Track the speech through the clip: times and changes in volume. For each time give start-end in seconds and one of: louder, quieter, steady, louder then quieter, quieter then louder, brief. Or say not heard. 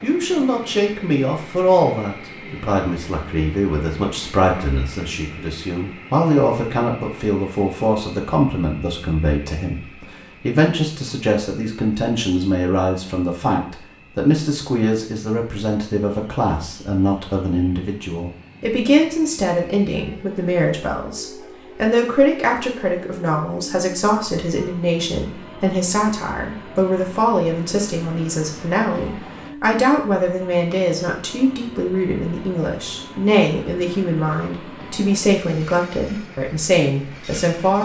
0.0-37.8 steady.